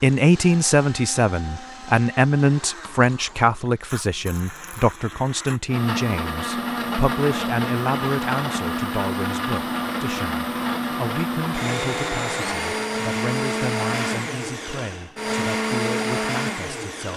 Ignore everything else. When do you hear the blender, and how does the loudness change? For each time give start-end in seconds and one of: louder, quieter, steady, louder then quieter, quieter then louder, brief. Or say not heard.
0.0-17.1 louder.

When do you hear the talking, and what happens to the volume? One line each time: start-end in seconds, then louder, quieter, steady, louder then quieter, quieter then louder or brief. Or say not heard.
0.0-17.1 quieter.